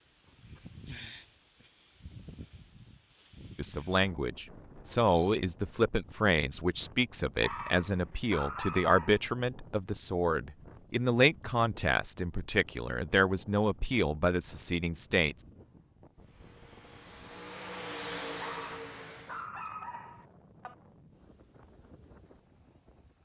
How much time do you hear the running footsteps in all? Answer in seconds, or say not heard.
not heard.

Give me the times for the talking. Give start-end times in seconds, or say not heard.
3.5-15.4.